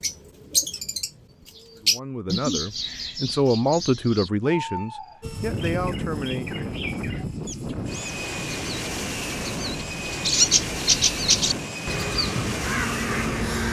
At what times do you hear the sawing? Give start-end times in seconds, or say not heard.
not heard.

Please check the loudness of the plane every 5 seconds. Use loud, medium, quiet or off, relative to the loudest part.
off, loud, loud.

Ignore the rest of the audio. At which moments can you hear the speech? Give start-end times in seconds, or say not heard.
1.8-6.6.